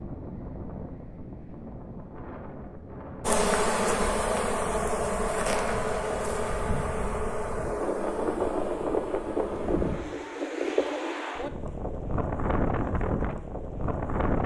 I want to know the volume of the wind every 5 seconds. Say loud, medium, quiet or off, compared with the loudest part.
medium, loud, loud.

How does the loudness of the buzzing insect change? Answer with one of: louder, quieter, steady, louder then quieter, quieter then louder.
quieter.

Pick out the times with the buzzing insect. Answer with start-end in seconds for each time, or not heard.
3.2-10.0.